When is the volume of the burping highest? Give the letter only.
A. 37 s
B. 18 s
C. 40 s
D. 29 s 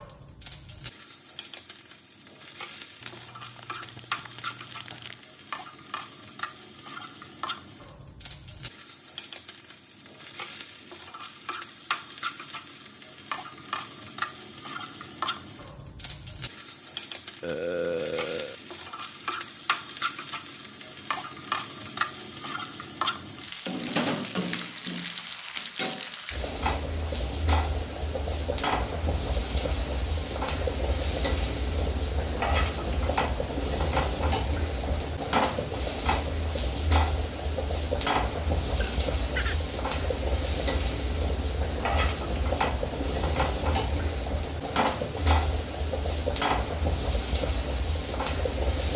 B.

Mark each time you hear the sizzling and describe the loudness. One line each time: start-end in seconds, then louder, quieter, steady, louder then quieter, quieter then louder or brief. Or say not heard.
0.0-48.9 louder.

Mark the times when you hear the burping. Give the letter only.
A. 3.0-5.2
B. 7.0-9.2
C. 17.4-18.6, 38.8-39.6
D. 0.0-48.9
C.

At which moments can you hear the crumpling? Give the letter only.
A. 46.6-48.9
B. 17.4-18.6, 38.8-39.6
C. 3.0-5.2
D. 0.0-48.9
C.